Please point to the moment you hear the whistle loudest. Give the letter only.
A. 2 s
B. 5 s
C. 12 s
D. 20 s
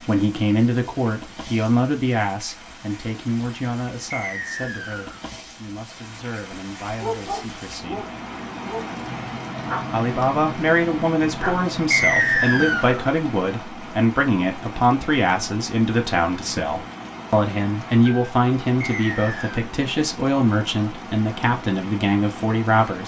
C.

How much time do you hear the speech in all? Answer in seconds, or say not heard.
21 s.